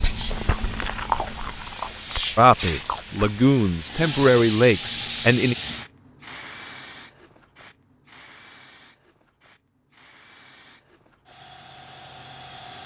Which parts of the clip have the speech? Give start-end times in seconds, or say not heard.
2.4-5.5.